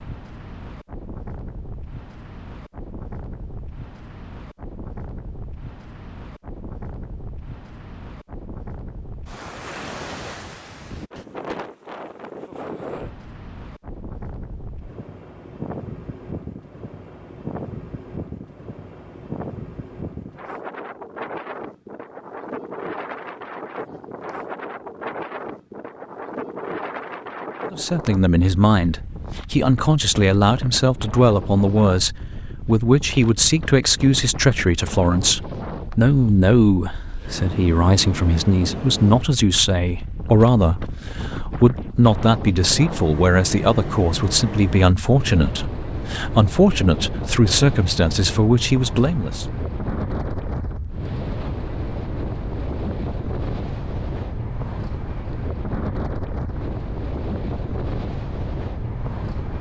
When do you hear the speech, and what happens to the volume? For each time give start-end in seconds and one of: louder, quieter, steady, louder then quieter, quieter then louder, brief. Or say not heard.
27.7-49.5 steady.